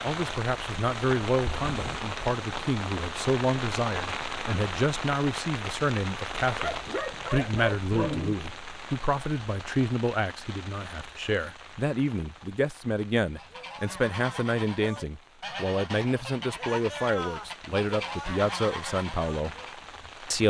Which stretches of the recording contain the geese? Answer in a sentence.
You can hear the geese from 13.2 to 19.9 s.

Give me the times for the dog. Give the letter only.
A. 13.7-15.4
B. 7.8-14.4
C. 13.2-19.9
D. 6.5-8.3
D.